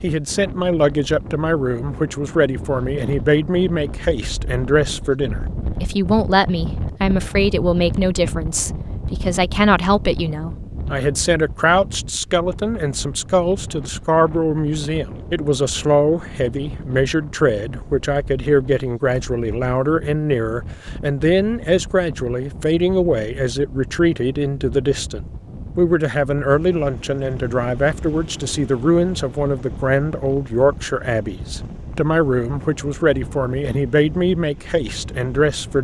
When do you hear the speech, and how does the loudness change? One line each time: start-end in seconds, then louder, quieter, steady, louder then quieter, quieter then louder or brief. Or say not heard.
0.0-35.8 steady.